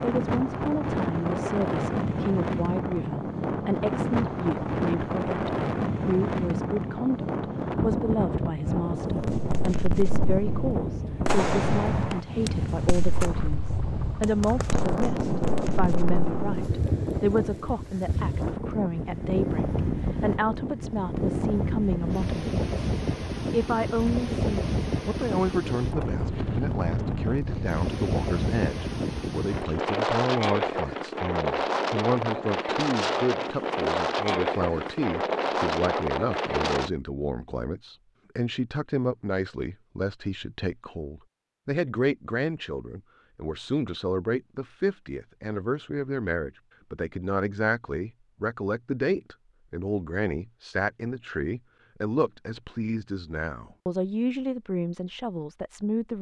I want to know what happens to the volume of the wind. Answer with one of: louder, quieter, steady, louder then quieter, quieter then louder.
steady.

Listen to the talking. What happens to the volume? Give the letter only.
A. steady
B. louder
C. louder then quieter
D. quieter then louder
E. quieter
A.